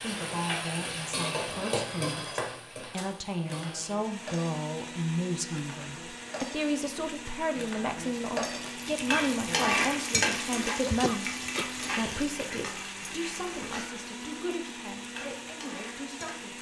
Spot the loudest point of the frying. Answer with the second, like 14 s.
10 s.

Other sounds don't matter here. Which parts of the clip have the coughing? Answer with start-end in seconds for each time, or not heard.
10.8-12.2.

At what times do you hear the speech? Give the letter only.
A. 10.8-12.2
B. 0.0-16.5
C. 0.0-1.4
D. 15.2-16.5
B.